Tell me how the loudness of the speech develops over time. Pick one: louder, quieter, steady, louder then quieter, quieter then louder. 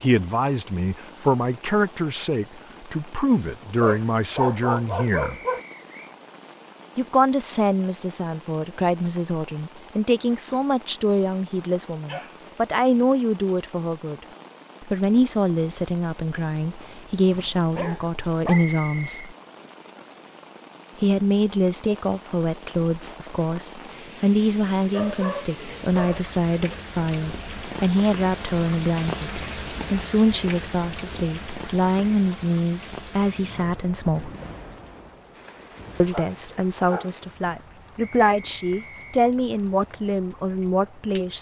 steady.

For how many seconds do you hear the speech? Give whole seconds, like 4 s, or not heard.
36 s.